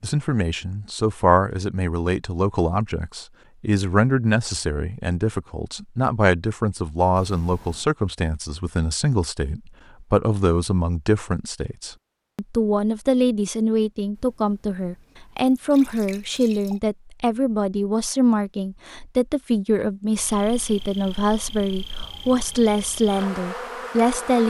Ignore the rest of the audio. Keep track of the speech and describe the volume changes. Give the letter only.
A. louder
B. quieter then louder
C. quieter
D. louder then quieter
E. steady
E.